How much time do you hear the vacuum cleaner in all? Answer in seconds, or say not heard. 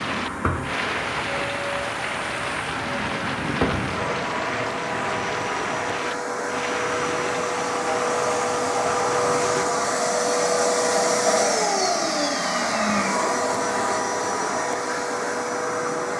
16 s.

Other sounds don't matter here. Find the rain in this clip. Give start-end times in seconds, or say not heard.
0.0-9.7.